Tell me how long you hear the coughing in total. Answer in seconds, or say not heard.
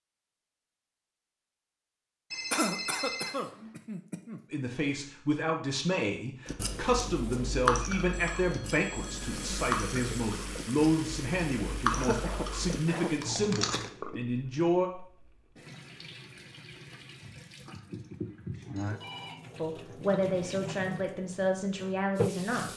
3 s.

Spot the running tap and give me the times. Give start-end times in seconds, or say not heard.
8.9-22.7.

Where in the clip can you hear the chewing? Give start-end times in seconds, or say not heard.
6.5-13.9.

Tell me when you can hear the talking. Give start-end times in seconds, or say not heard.
4.5-14.9, 19.6-22.7.